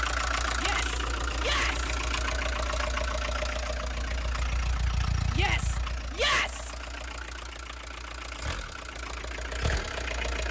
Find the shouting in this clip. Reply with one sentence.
The shouting can be heard from 0.6 to 1.9 s and from 5.3 to 6.7 s.